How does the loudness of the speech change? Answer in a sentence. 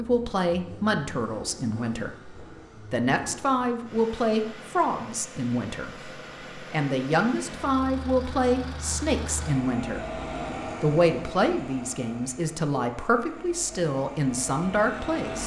The volume of the speech stays about the same.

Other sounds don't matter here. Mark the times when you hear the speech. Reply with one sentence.
The speech can be heard from 0.0 to 10.2 s and from 10.8 to 15.4 s.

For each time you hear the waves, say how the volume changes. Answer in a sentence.
You can't hear the waves here.